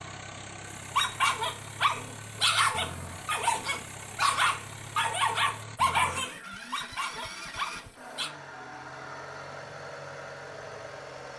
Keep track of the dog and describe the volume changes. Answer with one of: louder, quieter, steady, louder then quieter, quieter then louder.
quieter.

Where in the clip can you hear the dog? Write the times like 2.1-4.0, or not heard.
0.9-8.3.